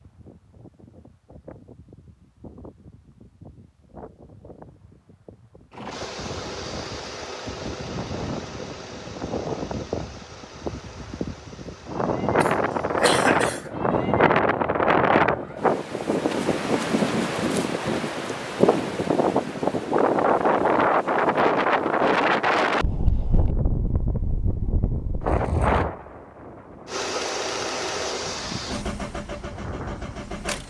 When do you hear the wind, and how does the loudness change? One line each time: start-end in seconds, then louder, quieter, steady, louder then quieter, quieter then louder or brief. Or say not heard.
0.0-30.6 louder then quieter.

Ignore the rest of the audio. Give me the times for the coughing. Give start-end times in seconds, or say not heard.
12.4-13.7.